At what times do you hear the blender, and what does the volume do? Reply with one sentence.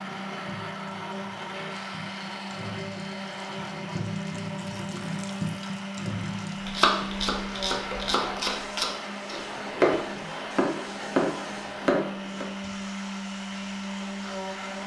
The blender can be heard from 0.0 to 14.8 s, at a steady volume.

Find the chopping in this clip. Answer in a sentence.
The chopping can be heard from 6.7 to 12.4 s.